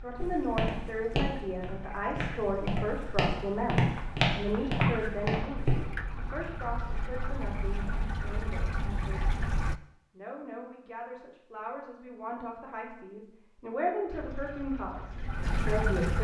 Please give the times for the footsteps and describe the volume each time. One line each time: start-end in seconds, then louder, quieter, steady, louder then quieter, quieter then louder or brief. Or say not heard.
0.1-5.9 quieter then louder.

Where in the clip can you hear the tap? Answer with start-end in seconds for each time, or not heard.
0.0-9.8, 14.1-16.1.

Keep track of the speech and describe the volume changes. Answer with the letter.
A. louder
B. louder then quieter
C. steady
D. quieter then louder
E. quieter
D.